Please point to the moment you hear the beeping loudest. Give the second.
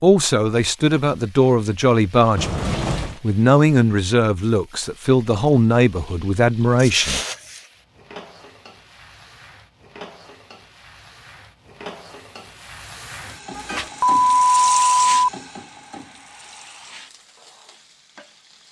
15 s.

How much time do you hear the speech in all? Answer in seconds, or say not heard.
7 s.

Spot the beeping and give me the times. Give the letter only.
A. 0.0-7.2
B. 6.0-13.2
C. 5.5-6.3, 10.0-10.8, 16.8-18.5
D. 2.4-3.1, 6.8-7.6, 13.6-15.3
D.